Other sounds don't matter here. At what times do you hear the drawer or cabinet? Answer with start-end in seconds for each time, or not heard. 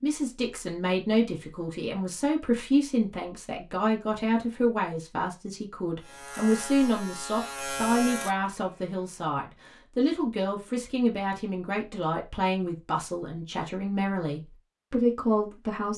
not heard.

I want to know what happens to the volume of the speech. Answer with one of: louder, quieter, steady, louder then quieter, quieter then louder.
steady.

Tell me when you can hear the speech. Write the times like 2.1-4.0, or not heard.
0.0-15.9.